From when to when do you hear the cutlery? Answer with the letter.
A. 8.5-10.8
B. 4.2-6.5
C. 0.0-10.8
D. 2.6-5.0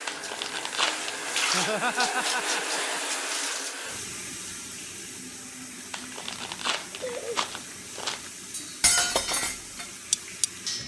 A.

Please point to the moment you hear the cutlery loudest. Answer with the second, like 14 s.
9 s.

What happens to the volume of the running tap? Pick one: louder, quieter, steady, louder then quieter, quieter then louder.
quieter.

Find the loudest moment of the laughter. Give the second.
2 s.